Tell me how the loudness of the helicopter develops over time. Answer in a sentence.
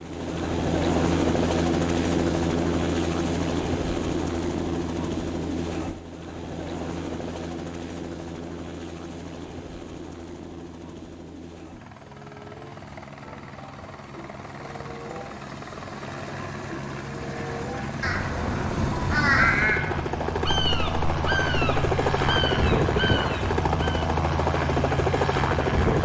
The loudness of the helicopter goes down, then up.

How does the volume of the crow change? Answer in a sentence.
The loudness of the crow goes up, then down.